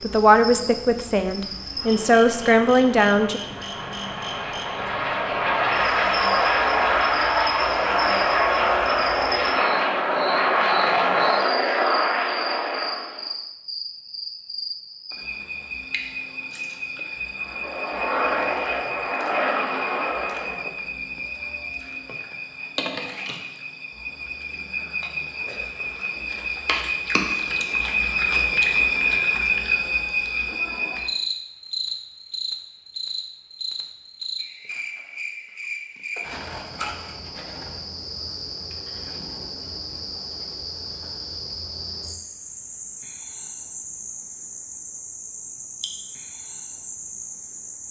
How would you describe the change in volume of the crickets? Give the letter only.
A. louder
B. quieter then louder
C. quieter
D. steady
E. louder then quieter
E.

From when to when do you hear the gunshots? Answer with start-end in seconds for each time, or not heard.
not heard.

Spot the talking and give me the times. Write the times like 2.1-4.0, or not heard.
0.0-3.4.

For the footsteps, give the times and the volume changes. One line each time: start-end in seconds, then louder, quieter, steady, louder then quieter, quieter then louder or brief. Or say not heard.
not heard.